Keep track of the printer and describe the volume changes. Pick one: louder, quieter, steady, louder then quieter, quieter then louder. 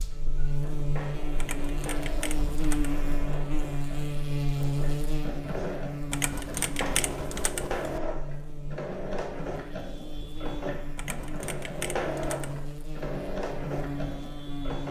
louder.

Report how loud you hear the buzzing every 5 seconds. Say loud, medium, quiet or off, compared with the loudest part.
loud, medium, medium.